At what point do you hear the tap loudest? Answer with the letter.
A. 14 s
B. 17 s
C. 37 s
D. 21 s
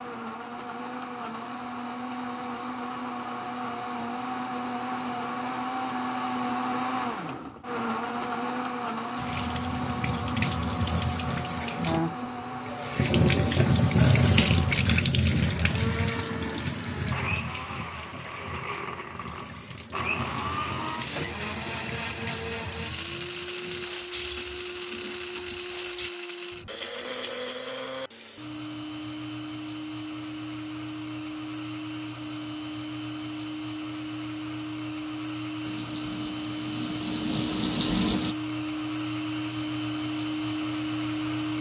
A.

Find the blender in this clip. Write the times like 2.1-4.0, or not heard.
0.0-41.5.